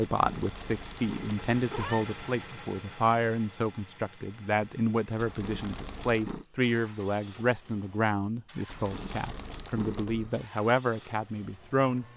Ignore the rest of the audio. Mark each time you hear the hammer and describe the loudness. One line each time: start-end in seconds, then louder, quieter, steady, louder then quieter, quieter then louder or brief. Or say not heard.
not heard.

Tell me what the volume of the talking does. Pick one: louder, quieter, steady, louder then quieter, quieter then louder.
steady.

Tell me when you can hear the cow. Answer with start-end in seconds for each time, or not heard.
not heard.